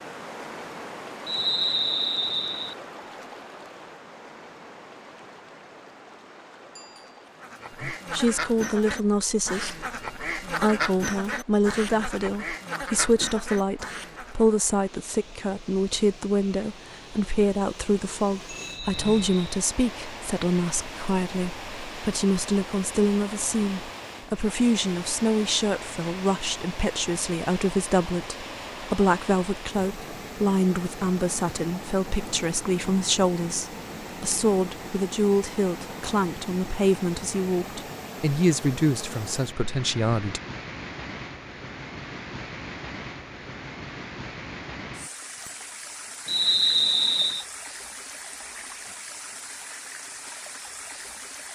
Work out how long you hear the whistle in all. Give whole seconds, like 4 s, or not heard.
4 s.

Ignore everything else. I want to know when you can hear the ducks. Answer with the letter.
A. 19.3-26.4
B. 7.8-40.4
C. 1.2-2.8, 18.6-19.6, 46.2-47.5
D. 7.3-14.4
D.